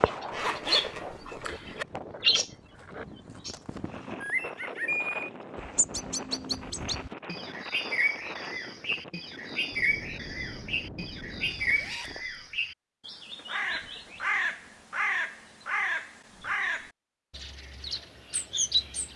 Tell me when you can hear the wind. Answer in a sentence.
You can hear the wind from 0.0 to 12.0 s.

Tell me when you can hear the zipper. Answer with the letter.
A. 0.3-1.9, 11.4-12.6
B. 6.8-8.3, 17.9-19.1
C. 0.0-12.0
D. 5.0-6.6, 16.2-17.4
A.